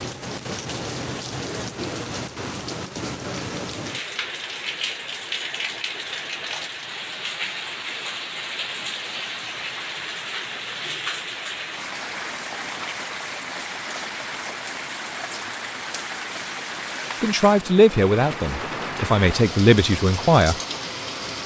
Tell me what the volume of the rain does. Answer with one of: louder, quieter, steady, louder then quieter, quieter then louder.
steady.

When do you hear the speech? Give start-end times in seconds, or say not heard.
17.2-20.6.